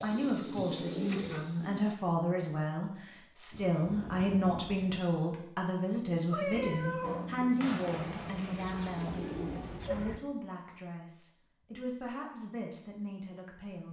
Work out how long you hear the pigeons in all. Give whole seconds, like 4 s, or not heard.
6 s.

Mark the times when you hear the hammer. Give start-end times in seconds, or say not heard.
7.0-10.1.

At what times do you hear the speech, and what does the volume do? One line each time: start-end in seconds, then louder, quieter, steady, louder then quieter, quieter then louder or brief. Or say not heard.
0.0-13.8 quieter.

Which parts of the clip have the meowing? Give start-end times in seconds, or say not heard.
6.3-7.3.